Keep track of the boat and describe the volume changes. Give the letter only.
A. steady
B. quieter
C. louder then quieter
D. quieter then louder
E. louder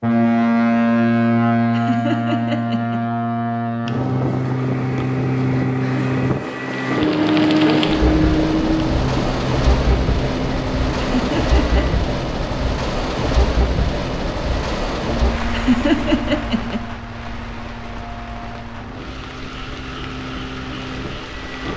B.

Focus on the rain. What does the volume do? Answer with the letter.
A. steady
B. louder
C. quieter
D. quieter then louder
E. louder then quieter
C.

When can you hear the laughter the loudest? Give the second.
16 s.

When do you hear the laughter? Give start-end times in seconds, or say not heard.
1.7-3.0, 11.1-11.8, 15.5-16.8.